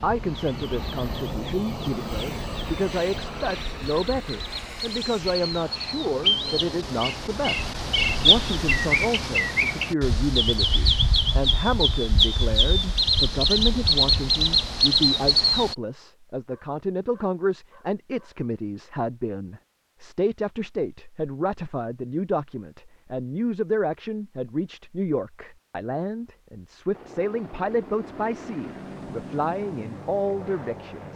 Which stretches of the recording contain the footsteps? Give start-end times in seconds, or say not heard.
not heard.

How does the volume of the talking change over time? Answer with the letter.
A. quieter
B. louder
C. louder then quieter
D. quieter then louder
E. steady
E.